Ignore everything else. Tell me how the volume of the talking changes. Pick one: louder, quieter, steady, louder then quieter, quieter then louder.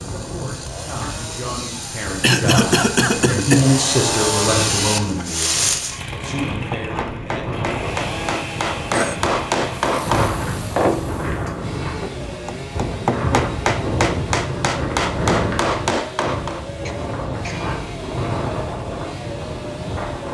louder then quieter.